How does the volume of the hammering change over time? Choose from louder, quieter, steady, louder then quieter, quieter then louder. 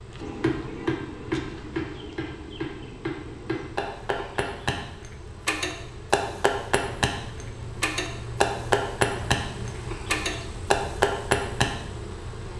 louder.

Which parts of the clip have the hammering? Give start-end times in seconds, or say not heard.
0.2-11.7.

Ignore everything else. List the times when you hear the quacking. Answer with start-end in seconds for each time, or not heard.
not heard.